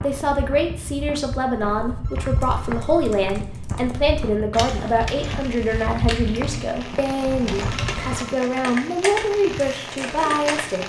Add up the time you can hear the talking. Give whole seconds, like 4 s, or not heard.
11 s.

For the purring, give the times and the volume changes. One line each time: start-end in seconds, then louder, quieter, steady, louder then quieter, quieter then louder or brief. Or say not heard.
not heard.